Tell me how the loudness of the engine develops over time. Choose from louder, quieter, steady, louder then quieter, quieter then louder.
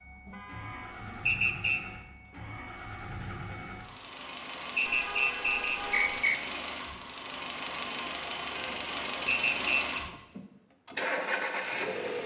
louder.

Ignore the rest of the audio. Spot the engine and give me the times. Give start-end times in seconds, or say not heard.
0.0-12.2.